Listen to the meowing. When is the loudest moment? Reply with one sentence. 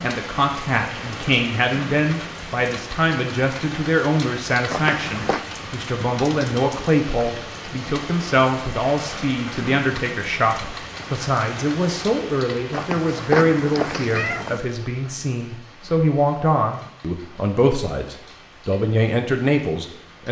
The volume of the meowing peaks at 13 seconds.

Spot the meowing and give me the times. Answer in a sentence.
The meowing can be heard from 4.7 to 5.5 s and from 12.7 to 14.6 s.